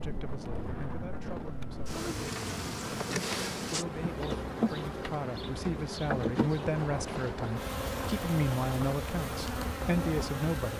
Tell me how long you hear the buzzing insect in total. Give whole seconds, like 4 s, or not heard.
11 s.